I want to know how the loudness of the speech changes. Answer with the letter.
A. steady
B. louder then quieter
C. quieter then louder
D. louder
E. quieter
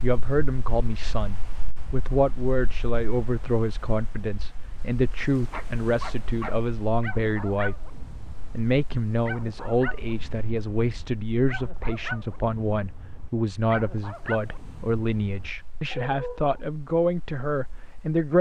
A.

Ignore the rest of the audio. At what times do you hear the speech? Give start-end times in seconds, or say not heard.
0.0-7.8, 8.6-18.3.